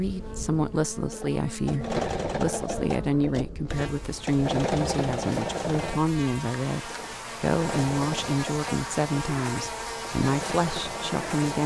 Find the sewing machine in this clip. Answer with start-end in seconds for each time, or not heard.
0.0-11.6.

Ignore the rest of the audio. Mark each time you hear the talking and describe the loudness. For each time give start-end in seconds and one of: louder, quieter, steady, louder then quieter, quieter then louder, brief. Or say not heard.
0.0-11.6 steady.